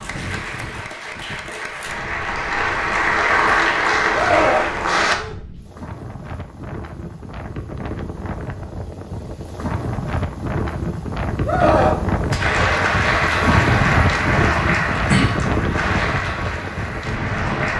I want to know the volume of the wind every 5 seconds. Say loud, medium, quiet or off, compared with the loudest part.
quiet, medium, loud, loud.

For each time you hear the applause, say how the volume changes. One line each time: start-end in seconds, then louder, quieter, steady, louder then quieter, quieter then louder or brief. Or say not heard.
0.0-5.2 louder
12.3-17.7 quieter.